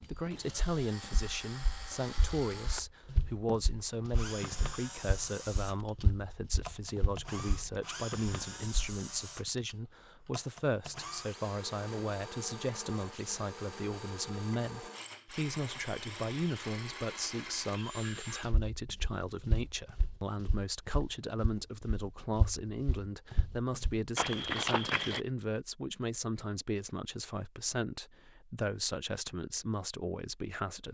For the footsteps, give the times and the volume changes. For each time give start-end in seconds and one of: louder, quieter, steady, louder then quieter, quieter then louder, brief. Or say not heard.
0.0-9.0 louder
18.4-25.2 quieter then louder.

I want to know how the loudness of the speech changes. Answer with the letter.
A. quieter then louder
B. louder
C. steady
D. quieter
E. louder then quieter
C.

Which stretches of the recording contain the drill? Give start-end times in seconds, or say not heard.
0.1-18.5.